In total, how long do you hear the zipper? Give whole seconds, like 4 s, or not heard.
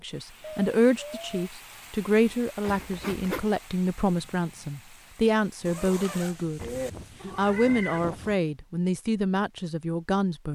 2 s.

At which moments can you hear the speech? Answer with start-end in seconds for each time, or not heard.
0.0-6.7, 7.3-10.4.